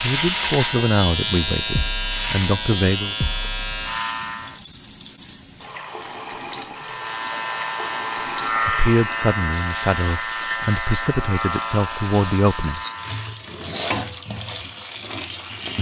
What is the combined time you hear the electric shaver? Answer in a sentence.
The electric shaver can be heard for 11 seconds in total.